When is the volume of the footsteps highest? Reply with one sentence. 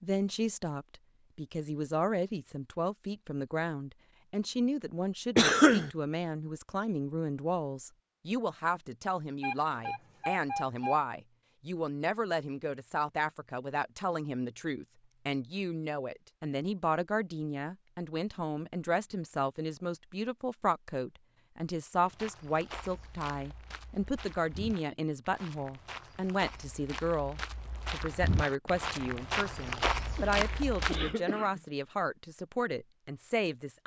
The volume of the footsteps peaks at 30 seconds.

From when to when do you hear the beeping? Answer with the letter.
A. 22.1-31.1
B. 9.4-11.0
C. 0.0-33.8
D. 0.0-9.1
B.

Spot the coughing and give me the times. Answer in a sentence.
The coughing can be heard from 5.3 to 5.9 s and from 30.1 to 31.6 s.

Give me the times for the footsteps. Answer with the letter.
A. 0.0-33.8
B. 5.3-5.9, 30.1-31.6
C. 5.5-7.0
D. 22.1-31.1
D.